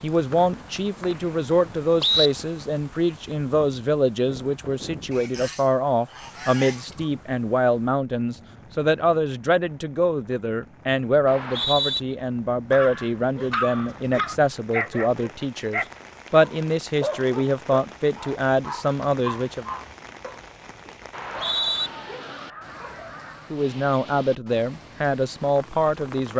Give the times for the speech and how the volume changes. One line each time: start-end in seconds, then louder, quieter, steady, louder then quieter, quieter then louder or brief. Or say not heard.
0.0-19.6 steady
23.5-26.3 brief.